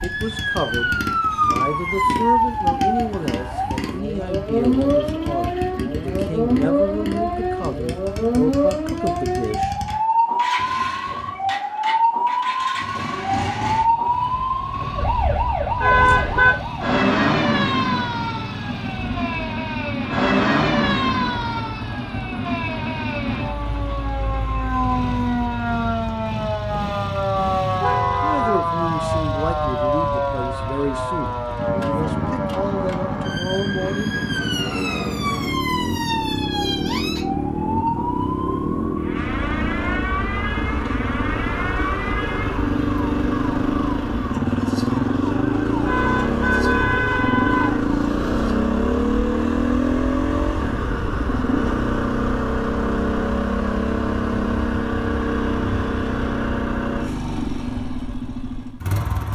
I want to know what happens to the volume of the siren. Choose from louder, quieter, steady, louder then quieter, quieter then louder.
quieter.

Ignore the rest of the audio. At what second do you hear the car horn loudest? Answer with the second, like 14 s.
16 s.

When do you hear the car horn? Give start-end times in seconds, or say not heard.
15.8-16.6, 27.8-28.6, 45.9-47.8.